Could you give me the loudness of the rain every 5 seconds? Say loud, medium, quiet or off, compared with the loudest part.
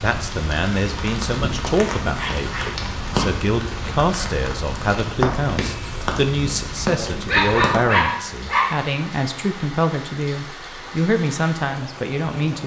loud, loud, medium.